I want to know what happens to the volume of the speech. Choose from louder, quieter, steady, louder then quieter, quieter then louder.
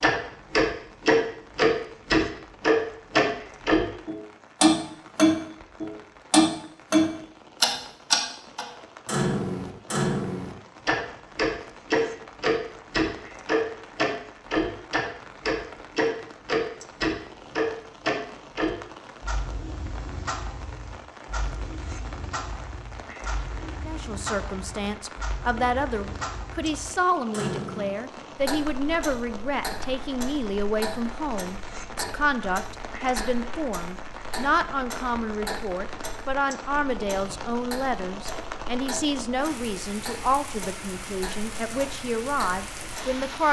steady.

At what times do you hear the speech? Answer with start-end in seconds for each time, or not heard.
23.9-43.4.